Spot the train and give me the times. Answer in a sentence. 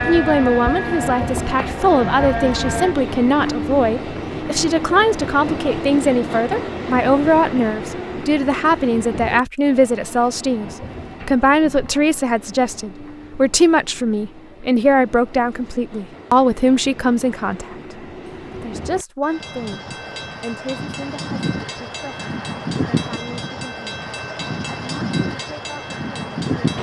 You can hear the train from 0.0 to 26.7 s.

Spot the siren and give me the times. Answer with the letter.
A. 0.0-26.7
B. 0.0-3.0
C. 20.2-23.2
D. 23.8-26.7
B.